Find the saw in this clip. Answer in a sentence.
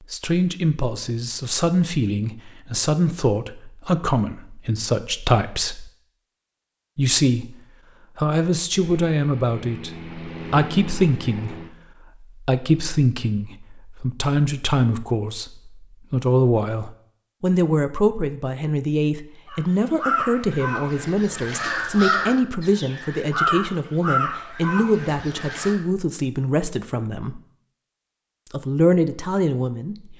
You can't hear the saw here.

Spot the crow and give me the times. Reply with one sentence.
You can hear the crow from 19.5 to 25.8 s.